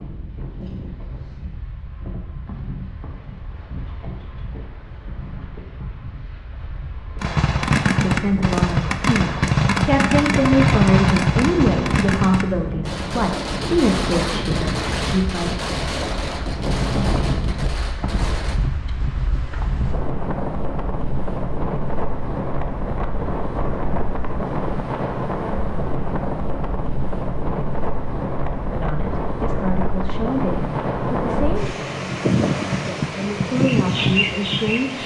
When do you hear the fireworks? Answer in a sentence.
You can hear the fireworks from 7.2 to 18.6 s.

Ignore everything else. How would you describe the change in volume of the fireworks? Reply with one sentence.
The loudness of the fireworks goes down.